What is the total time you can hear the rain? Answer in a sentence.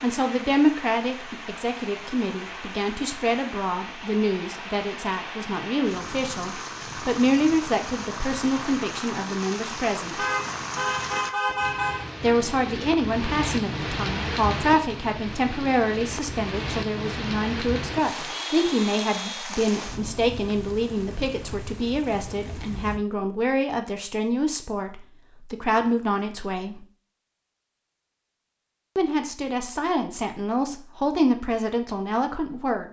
The rain can be heard for 23 seconds in total.